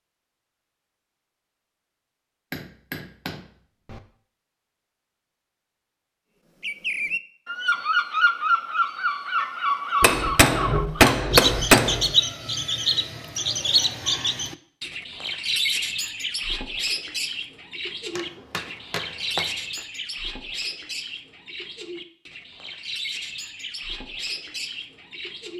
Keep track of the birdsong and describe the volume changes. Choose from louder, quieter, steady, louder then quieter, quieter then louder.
quieter.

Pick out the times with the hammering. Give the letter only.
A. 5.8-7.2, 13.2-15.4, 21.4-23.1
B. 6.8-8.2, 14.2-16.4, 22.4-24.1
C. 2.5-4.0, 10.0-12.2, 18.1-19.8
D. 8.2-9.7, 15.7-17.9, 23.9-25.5
C.